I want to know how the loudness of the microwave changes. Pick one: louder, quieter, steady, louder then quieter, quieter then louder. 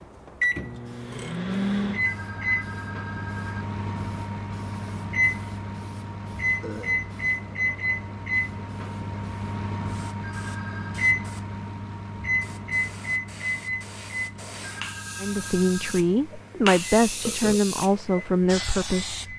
quieter.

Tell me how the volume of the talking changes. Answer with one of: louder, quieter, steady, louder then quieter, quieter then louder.
steady.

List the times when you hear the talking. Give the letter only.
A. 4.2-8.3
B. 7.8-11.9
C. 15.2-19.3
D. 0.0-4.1
C.